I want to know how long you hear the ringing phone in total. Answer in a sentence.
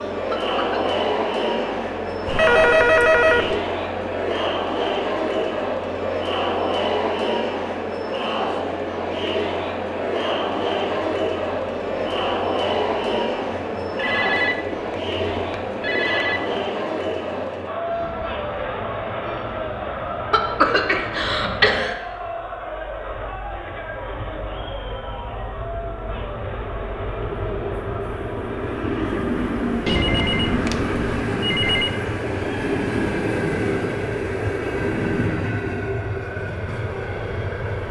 The ringing phone can be heard for 6 seconds in total.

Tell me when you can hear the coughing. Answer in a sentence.
You can hear the coughing from 0.3 to 0.9 s and from 20.3 to 21.9 s.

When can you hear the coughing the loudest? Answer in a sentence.
The loudest moment of the coughing is at 21 seconds.